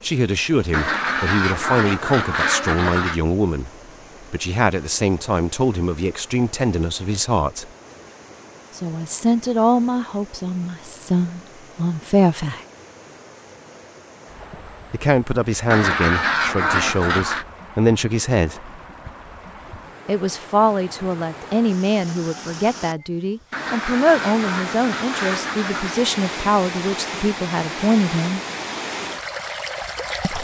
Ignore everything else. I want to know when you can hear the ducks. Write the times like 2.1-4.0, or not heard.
0.7-3.2, 15.7-17.4, 23.5-25.9.